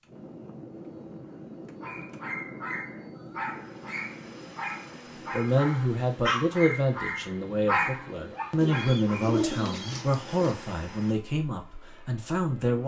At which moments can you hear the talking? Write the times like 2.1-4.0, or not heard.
5.3-12.8.